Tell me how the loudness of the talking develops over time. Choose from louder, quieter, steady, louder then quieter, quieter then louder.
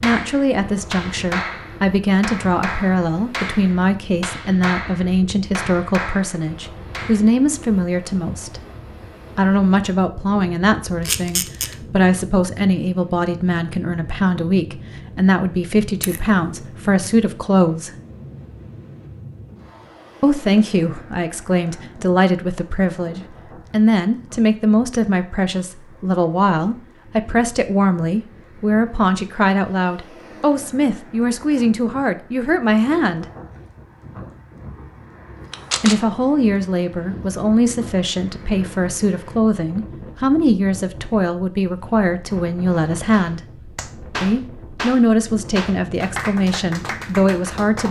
steady.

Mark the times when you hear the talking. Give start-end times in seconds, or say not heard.
0.0-8.6, 9.3-17.9, 20.2-33.2, 35.8-43.4, 44.2-47.8.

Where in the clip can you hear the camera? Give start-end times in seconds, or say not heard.
11.1-11.8, 16.0-16.7, 35.5-36.0.